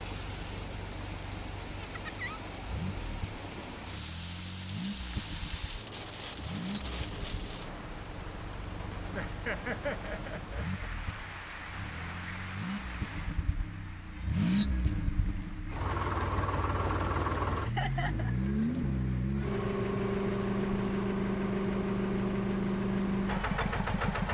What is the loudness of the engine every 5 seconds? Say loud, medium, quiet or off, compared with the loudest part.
quiet, quiet, medium, loud, loud.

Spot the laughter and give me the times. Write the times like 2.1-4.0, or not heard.
1.8-2.4, 9.1-10.9, 17.6-18.4.